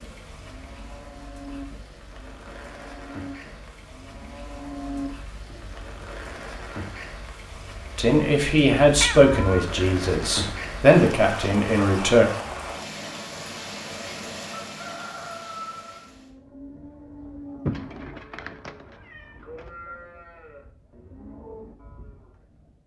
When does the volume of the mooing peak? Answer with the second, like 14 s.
5 s.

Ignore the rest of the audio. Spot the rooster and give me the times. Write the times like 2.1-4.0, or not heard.
14.6-16.0.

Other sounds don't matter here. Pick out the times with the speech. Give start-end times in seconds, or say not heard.
8.0-12.3.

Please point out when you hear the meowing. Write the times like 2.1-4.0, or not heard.
8.9-9.7, 17.6-19.7.